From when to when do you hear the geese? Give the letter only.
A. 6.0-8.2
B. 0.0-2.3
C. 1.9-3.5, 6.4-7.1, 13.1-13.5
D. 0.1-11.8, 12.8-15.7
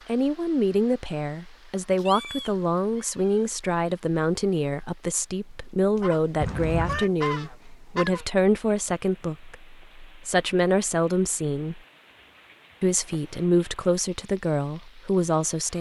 A.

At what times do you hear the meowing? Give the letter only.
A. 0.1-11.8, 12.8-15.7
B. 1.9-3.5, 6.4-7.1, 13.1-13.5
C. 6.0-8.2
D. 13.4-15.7
B.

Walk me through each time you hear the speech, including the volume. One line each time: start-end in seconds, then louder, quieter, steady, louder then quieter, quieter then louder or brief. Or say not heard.
0.1-11.8 steady
12.8-15.7 brief.